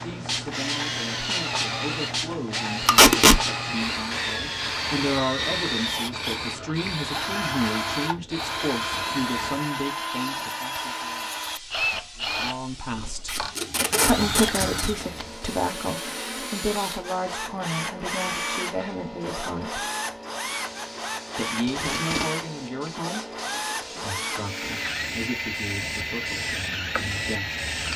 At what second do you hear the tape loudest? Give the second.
3 s.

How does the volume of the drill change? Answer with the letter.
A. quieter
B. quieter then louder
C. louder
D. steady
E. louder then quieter
D.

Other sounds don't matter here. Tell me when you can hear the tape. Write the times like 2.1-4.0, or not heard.
2.9-3.4, 13.2-14.9, 21.6-22.2.